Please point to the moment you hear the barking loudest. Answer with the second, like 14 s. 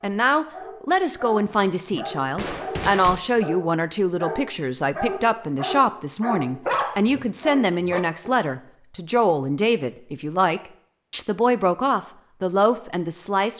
7 s.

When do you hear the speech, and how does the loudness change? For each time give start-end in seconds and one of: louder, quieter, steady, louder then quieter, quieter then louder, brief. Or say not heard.
0.0-13.5 steady.